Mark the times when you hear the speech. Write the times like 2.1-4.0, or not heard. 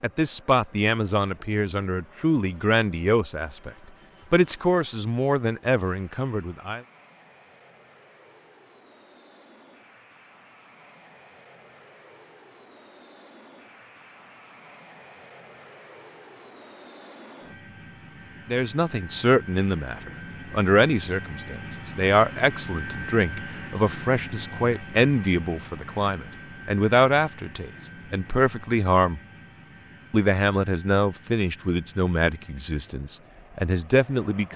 0.0-6.8, 18.4-29.2, 30.1-34.5.